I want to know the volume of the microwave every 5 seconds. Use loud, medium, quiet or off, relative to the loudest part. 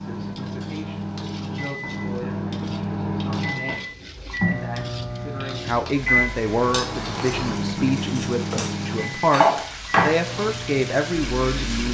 loud, loud, medium.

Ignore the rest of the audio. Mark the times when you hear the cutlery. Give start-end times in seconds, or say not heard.
6.7-10.1.